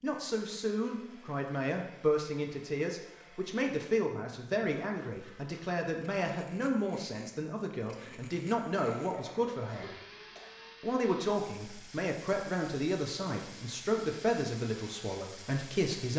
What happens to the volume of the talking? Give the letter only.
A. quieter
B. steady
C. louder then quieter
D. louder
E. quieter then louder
B.